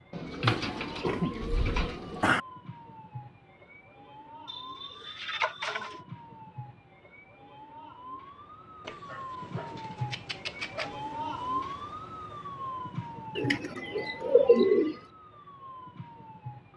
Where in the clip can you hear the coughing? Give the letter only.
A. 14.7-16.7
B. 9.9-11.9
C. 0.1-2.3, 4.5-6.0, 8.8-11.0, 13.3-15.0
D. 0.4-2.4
D.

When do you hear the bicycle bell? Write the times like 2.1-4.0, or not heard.
not heard.